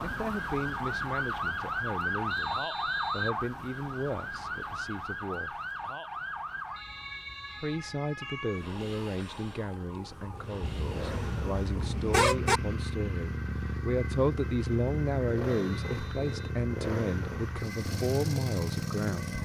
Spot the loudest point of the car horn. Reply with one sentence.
The volume of the car horn peaks at 12 seconds.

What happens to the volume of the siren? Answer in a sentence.
The volume of the siren goes down.